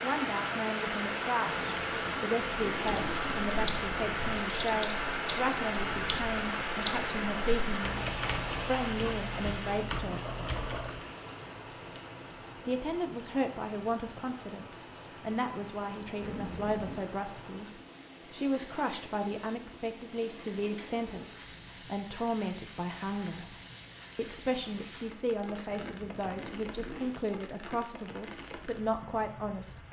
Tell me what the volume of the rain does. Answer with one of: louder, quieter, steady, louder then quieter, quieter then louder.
quieter.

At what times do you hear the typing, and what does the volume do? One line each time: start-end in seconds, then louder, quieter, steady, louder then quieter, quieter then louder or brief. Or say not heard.
2.8-11.1 steady.